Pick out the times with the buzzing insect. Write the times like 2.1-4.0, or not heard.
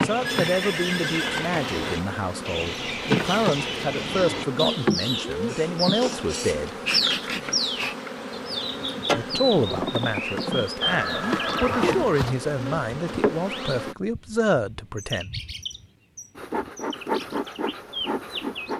0.0-13.9, 16.4-18.7.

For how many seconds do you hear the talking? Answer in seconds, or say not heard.
13 s.